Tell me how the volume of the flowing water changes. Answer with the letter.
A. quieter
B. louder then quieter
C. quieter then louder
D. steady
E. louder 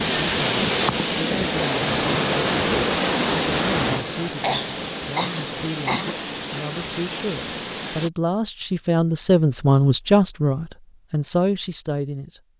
A.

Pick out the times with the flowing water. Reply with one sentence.
You can hear the flowing water from 0.0 to 8.1 s.